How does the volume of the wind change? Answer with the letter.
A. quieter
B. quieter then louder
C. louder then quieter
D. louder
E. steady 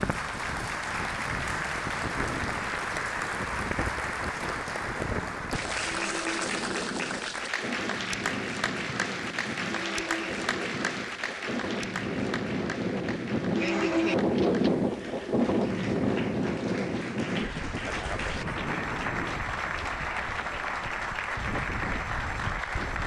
C.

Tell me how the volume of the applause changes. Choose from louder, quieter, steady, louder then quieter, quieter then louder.
quieter then louder.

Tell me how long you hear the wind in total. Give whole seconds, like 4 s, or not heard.
23 s.